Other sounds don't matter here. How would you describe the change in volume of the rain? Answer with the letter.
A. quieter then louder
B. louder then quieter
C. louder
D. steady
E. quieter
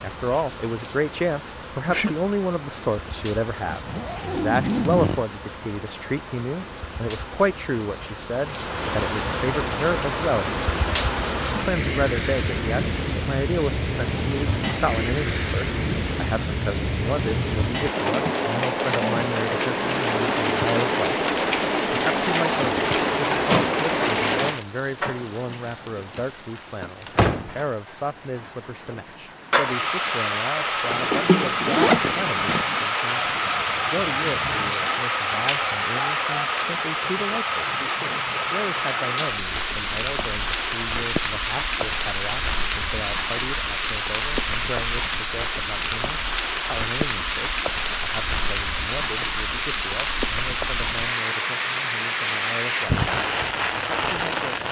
C.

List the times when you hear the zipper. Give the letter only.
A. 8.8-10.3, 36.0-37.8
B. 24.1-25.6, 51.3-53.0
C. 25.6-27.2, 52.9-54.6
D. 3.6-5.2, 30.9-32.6
D.